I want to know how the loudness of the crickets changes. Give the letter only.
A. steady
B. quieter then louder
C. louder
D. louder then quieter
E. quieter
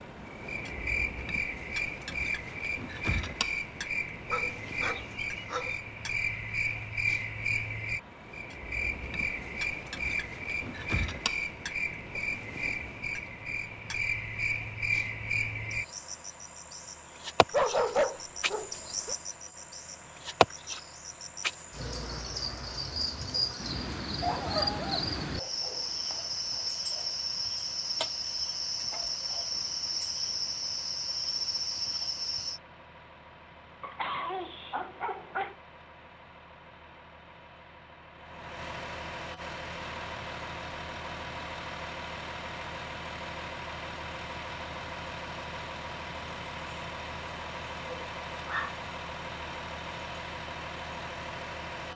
A.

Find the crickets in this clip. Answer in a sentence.
The crickets can be heard from 0.0 to 32.6 s.